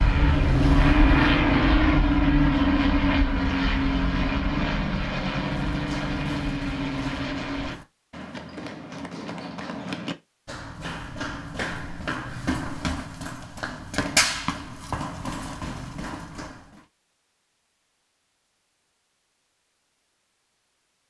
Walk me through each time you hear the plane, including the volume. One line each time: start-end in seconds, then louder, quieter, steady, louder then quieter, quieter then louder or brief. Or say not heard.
0.0-7.8 quieter.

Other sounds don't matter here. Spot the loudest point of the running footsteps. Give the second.
14 s.